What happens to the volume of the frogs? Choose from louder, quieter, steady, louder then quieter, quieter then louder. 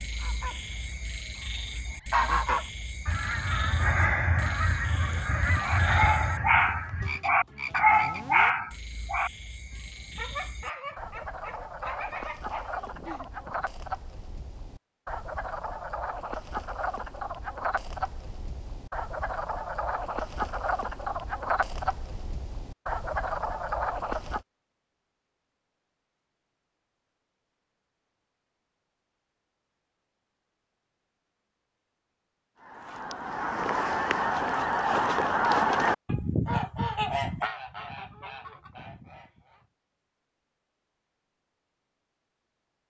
louder.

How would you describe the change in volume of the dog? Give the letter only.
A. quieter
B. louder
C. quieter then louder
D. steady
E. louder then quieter
A.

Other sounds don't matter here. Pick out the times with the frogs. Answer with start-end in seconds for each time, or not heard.
0.0-24.4.